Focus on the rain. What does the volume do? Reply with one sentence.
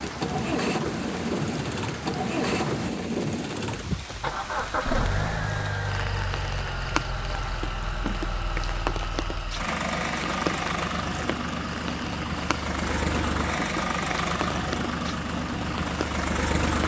The volume of the rain stays about the same.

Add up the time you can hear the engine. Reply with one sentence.
The engine can be heard for 17 seconds in total.